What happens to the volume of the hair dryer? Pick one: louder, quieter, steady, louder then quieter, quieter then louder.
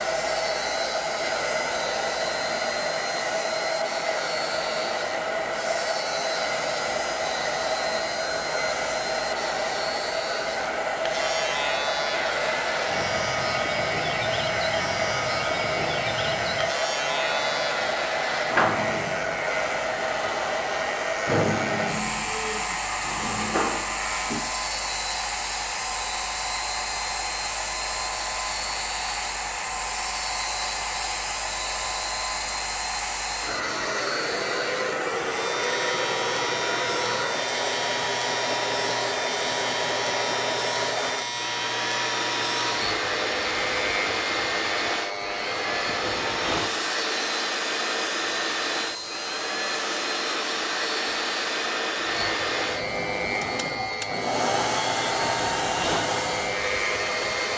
steady.